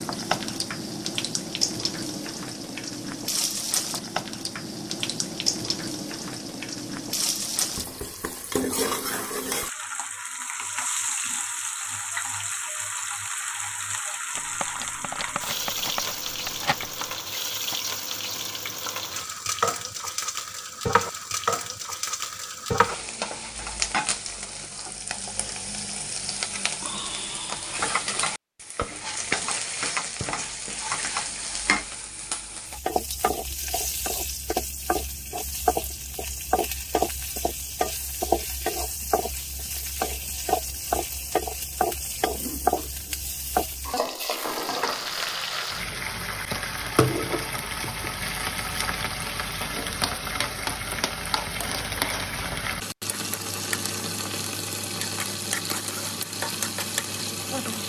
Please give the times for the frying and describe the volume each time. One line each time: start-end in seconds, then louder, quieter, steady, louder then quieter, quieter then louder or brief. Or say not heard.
0.0-57.8 steady.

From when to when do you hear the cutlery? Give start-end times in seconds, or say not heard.
14.3-17.2.